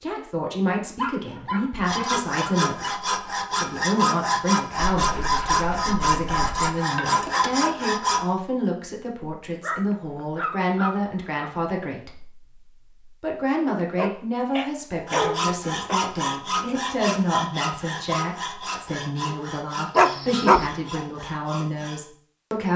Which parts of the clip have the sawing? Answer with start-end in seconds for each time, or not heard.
1.9-8.2, 15.1-22.0.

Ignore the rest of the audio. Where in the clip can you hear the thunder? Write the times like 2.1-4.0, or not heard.
not heard.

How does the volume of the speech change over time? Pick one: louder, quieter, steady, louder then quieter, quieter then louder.
steady.